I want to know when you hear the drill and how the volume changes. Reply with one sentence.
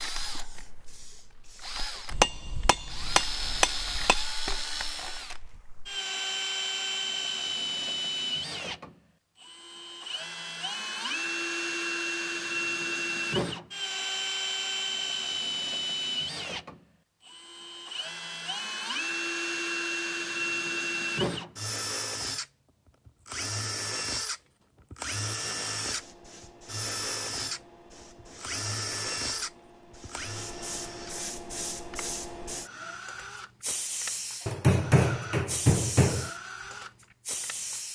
The drill can be heard from 0.0 to 37.9 s, getting quieter.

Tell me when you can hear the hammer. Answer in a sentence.
The hammer can be heard from 2.1 to 4.2 s and from 34.5 to 36.3 s.